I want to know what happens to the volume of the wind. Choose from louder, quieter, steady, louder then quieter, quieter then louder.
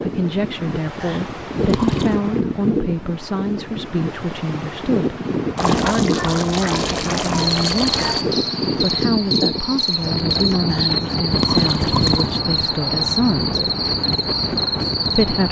steady.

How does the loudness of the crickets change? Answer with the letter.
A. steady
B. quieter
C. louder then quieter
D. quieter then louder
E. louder
A.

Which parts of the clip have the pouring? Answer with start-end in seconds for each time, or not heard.
1.0-2.2, 5.5-8.2, 10.7-12.3.